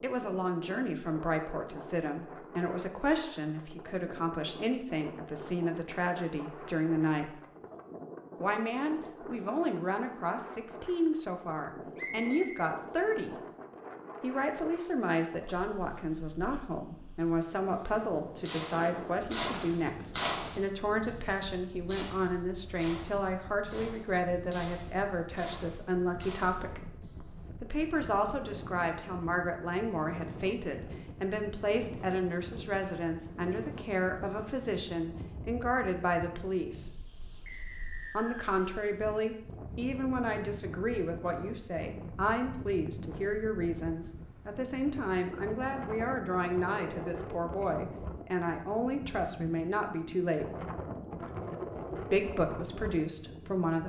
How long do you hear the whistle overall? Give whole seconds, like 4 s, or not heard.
2 s.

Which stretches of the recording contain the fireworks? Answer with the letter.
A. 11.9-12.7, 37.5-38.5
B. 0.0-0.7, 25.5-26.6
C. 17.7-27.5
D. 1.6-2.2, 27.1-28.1
C.